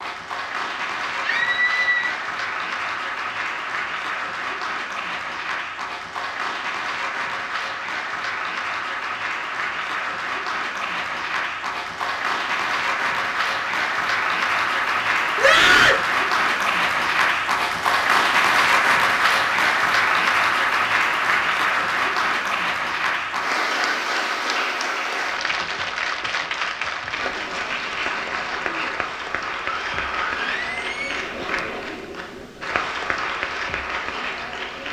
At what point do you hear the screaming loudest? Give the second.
16 s.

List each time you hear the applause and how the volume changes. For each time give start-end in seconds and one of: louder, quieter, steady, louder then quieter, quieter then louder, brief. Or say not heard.
0.0-34.8 louder then quieter.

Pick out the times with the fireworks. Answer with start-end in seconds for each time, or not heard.
not heard.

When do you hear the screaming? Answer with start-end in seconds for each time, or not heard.
1.2-2.1, 15.3-16.1, 29.6-31.2.